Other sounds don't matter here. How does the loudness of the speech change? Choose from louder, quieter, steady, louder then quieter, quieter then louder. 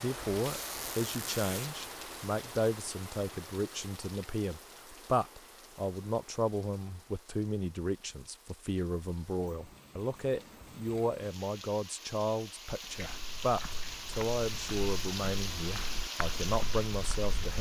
steady.